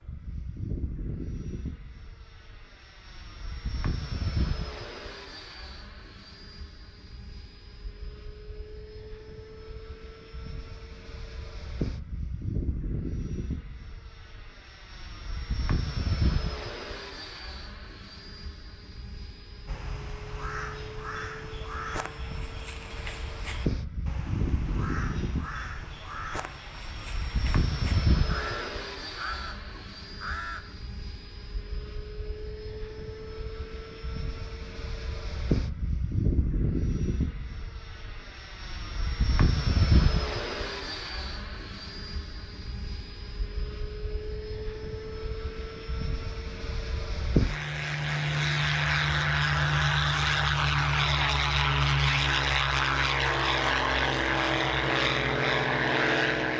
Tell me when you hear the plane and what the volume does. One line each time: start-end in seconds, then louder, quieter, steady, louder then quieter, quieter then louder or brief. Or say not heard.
0.0-56.5 louder.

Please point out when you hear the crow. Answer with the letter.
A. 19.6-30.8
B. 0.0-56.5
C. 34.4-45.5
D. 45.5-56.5
A.